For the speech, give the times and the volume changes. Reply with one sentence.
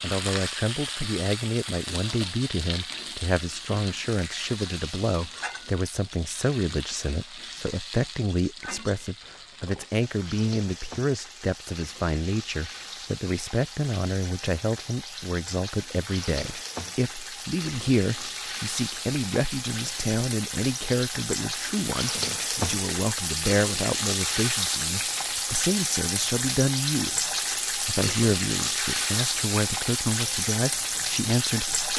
The speech can be heard from 0.0 to 31.8 s, at a steady volume.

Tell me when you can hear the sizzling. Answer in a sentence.
The sizzling can be heard from 0.0 to 31.9 s.